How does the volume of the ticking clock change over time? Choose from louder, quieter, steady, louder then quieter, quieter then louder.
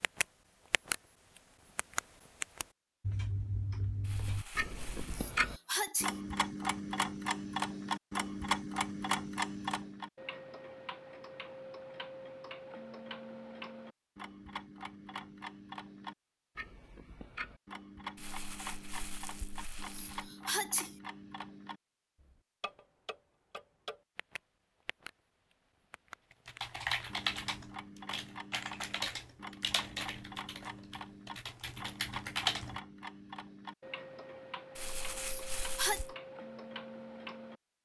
quieter.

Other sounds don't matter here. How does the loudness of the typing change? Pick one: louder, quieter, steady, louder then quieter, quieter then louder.
quieter then louder.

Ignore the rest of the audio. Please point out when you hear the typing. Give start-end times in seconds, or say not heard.
26.4-32.8.